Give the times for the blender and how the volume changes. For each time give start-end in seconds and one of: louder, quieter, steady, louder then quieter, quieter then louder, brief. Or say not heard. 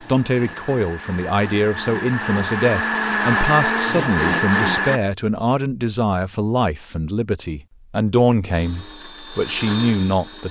0.0-5.0 louder
8.5-10.4 brief.